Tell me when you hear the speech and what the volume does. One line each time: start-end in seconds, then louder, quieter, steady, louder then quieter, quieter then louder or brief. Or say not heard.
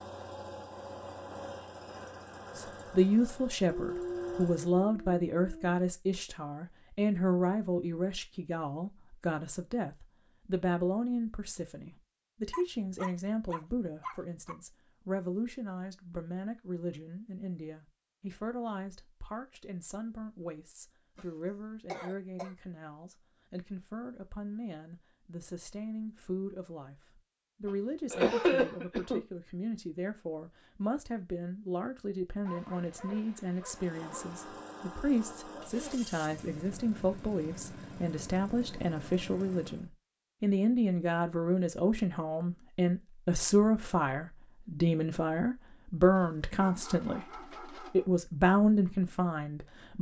2.5-49.9 quieter then louder.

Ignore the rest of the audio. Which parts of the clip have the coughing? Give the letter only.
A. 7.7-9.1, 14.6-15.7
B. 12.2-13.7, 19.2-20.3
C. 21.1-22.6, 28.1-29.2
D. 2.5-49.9
C.